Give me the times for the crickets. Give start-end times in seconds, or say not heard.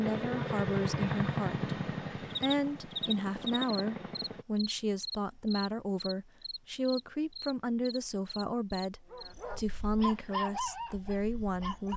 2.3-11.9.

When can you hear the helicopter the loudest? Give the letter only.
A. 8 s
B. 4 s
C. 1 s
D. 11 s
C.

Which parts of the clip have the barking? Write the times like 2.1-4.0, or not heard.
9.1-11.9.